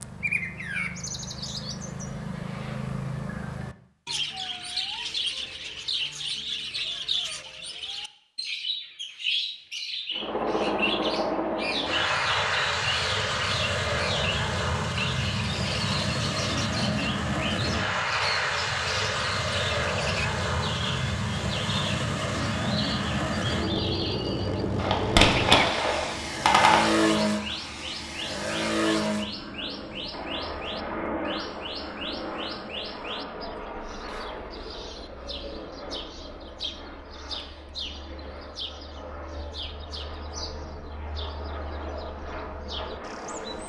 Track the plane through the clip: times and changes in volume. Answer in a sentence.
You can hear the plane from 10.2 to 43.6 s, getting quieter.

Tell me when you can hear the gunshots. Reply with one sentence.
You can hear the gunshots from 24.8 to 26.8 s.